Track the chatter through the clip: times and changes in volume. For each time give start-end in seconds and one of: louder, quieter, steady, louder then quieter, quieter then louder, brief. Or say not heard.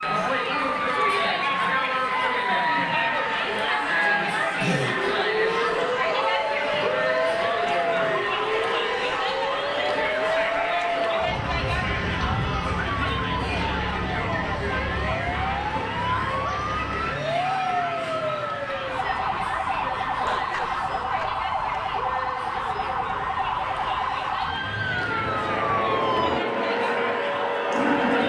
0.0-28.2 quieter.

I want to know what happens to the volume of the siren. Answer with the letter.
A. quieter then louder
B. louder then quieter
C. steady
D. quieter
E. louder
C.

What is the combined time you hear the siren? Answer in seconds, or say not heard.
28 s.